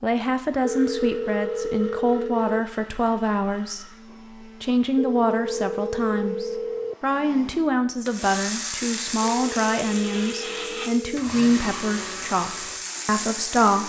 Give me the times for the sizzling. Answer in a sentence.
You can hear the sizzling from 8.1 to 13.8 s.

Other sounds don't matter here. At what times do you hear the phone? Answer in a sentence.
The phone can be heard from 0.6 to 2.6 s, from 5.0 to 7.0 s and from 9.2 to 11.2 s.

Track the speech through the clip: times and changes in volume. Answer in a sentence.
You can hear the speech from 0.0 to 13.8 s, at a steady volume.